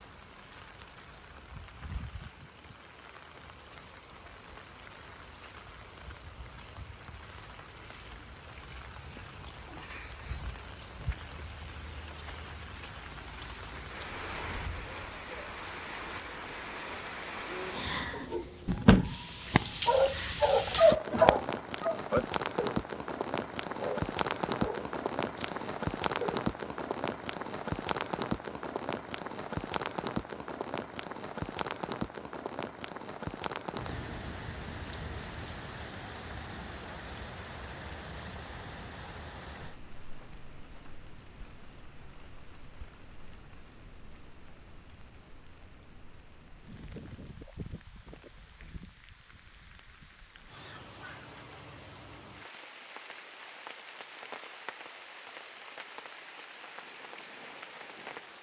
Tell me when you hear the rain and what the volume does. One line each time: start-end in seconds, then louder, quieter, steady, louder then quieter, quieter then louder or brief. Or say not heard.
0.0-58.3 louder then quieter.